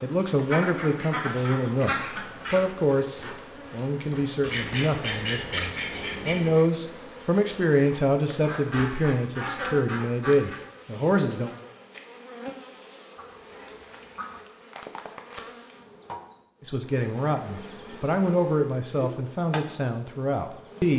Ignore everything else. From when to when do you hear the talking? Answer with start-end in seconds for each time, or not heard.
0.0-11.5, 16.6-20.9.